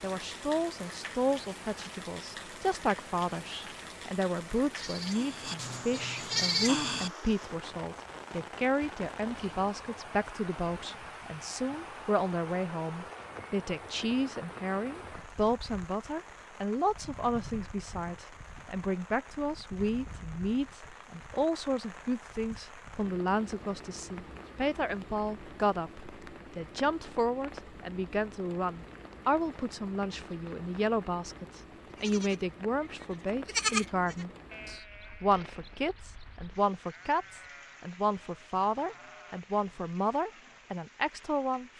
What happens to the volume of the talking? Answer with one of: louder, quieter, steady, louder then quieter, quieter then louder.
steady.